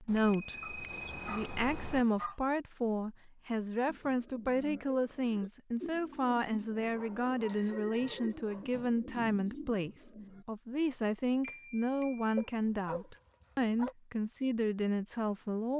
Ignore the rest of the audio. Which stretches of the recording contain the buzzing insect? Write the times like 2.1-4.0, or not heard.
not heard.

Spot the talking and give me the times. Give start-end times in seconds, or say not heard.
0.0-15.7.